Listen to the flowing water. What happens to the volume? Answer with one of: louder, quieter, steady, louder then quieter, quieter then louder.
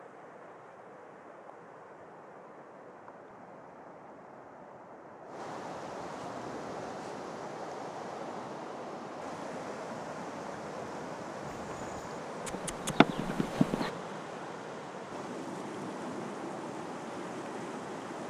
louder.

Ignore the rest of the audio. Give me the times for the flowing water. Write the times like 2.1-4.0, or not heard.
0.0-18.2.